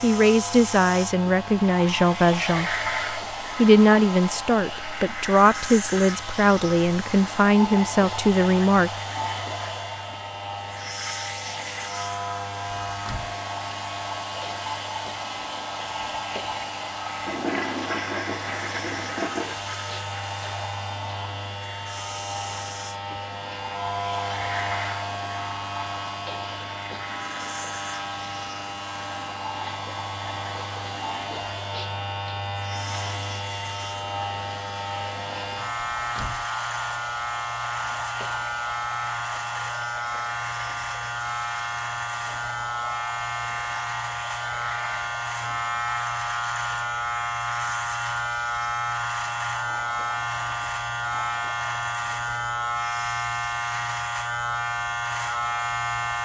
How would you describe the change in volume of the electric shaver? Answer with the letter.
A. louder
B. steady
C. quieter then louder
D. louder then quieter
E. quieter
A.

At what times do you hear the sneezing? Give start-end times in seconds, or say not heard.
not heard.